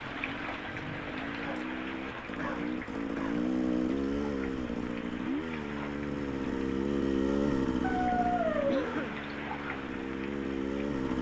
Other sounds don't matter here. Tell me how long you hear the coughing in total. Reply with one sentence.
The coughing can be heard for 2 seconds in total.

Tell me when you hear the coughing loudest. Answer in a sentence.
The volume of the coughing peaks at 9 seconds.